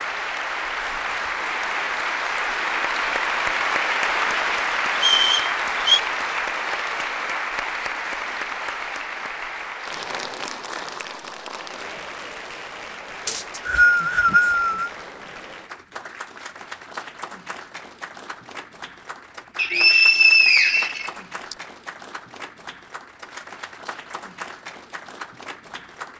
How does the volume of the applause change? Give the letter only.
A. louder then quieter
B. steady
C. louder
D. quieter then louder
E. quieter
E.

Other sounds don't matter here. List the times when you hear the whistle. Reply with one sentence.
You can hear the whistle from 5.0 to 6.0 s, from 13.2 to 14.9 s and from 19.6 to 21.6 s.